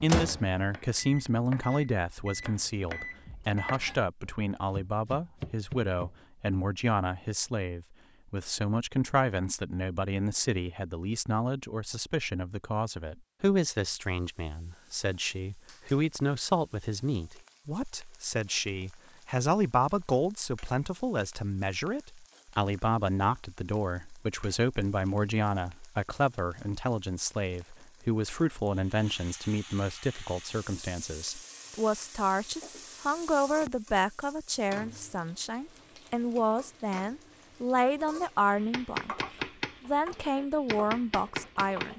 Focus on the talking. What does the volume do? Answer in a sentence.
The loudness of the talking stays about the same.